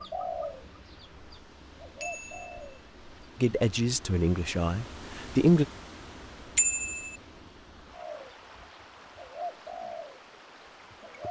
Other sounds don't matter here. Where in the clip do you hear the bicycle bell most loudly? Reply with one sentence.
The volume of the bicycle bell peaks at 7 seconds.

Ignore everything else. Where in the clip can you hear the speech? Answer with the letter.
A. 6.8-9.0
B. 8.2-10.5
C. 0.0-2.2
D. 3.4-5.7
D.